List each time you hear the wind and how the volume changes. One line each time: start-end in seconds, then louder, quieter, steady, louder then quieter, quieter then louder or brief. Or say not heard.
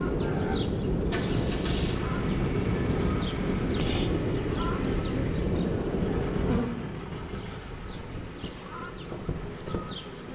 0.0-10.2 quieter.